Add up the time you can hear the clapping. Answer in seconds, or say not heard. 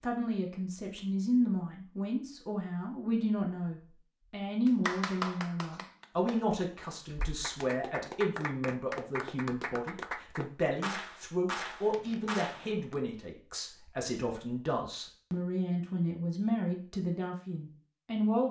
8 s.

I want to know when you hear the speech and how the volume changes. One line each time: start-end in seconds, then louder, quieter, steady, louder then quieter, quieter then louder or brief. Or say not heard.
0.0-18.4 steady.